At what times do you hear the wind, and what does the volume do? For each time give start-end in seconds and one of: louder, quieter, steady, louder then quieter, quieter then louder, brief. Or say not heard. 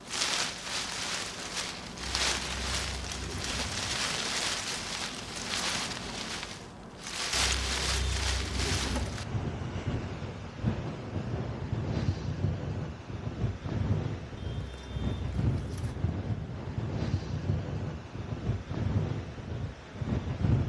0.0-20.6 steady.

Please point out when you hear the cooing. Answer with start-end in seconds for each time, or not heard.
2.0-4.0, 7.3-9.2, 14.3-15.9.